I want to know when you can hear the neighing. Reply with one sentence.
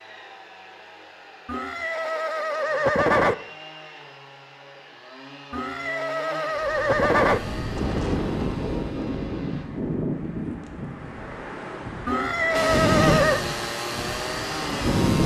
You can hear the neighing from 1.4 to 3.4 s, from 5.5 to 7.4 s and from 12.1 to 13.4 s.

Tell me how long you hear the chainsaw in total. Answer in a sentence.
You can hear the chainsaw for 12 seconds altogether.